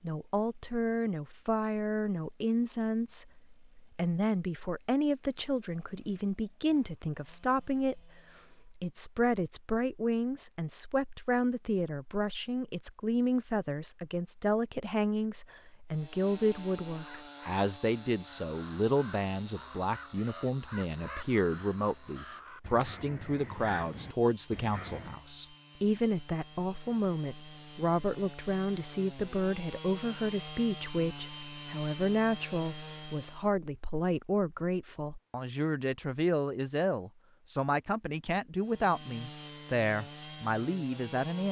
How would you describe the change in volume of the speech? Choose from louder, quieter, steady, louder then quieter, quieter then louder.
steady.